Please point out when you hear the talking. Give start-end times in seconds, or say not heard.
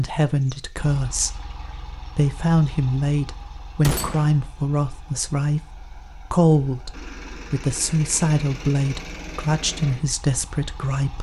0.0-11.1.